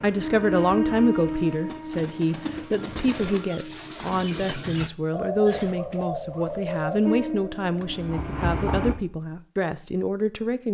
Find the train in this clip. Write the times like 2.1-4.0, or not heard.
0.0-4.0, 7.0-8.9.